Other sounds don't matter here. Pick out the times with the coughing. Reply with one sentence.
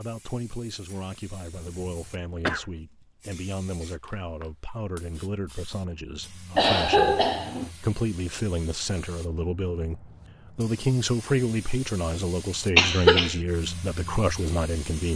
The coughing can be heard from 1.6 to 2.6 s, from 6.5 to 7.7 s and from 12.8 to 13.3 s.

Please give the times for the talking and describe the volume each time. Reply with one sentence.
You can hear the talking from 0.0 to 15.1 s, getting louder.